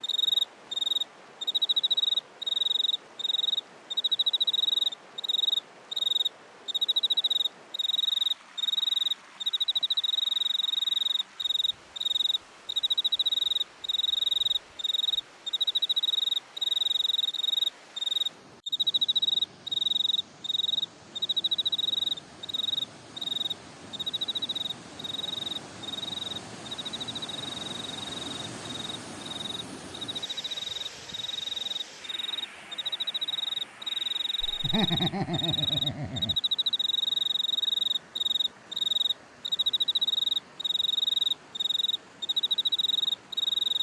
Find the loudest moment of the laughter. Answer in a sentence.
The volume of the laughter peaks at 35 seconds.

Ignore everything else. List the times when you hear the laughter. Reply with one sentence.
The laughter can be heard from 34.4 to 36.4 s.